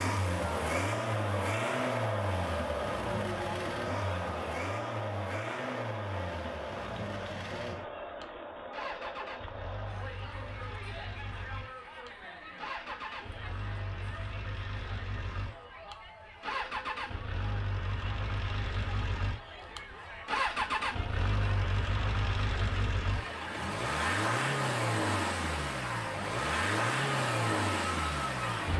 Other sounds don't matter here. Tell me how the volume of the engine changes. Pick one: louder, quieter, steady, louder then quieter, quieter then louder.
quieter then louder.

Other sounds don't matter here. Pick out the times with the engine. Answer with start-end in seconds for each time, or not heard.
0.0-28.7.